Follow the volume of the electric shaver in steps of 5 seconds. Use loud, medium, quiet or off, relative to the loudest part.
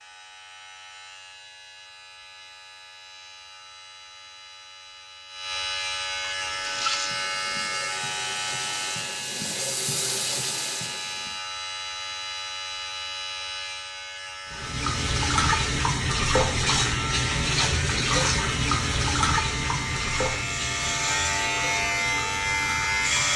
quiet, medium, medium, medium, loud.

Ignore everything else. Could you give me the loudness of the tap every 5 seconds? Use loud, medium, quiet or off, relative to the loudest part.
off, medium, medium, loud, medium.